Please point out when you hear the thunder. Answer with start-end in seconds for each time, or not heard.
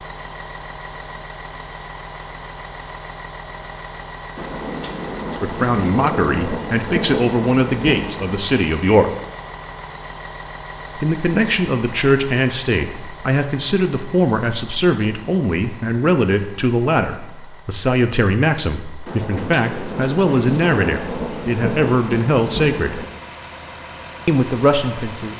4.3-8.4, 19.1-23.1.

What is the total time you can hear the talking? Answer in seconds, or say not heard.
17 s.